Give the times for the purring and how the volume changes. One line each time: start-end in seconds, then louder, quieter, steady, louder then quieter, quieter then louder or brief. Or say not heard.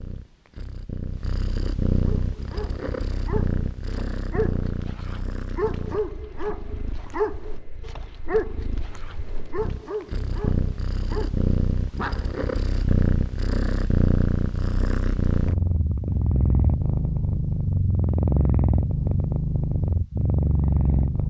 0.0-21.2 quieter then louder.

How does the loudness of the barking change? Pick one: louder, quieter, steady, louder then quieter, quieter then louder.
louder then quieter.